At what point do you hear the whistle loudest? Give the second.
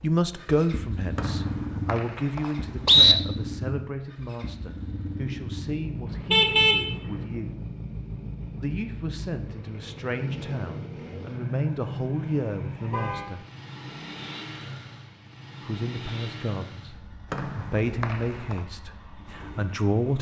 3 s.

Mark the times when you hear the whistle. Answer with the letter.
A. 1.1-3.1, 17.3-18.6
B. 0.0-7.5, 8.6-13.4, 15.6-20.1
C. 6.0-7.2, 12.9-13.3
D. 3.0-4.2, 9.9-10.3
A.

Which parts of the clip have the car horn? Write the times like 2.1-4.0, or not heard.
6.0-7.2, 12.9-13.3.